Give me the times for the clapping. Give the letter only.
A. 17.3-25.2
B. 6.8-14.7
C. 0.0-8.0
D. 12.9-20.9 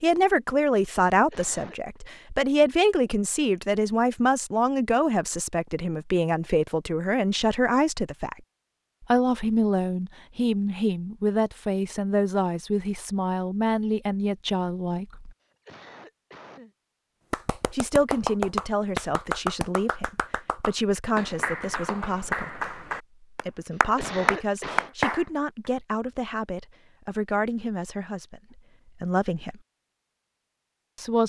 A.